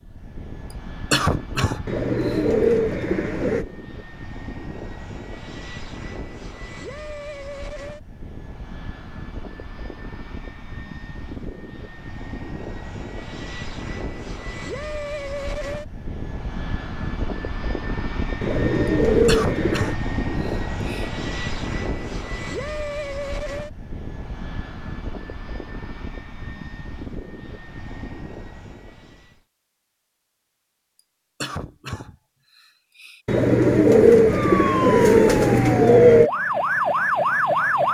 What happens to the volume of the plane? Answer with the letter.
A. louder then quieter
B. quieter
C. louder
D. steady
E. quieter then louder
A.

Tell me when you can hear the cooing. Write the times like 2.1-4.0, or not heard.
1.9-3.6, 18.4-19.9, 33.2-36.3.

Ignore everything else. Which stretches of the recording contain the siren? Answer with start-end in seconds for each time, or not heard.
34.3-37.8.